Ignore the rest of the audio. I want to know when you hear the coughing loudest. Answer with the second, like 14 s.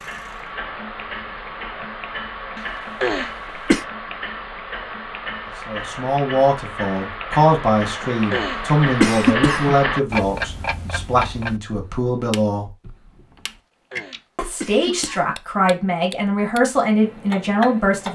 9 s.